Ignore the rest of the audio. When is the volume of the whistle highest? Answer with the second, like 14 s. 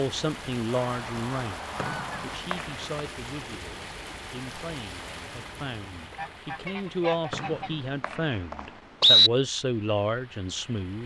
9 s.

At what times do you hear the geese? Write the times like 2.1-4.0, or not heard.
0.8-2.5, 6.1-7.9.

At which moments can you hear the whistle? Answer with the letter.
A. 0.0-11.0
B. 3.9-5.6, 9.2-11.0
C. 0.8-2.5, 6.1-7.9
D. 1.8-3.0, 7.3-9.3
D.